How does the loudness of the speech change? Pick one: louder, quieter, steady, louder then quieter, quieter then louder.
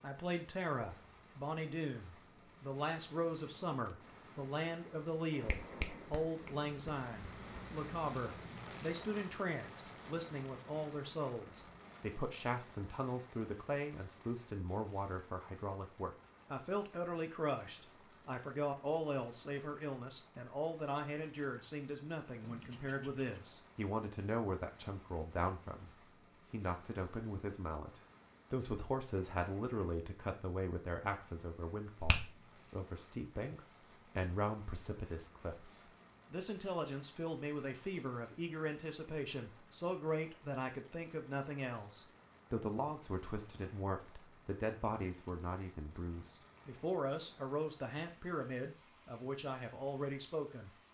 steady.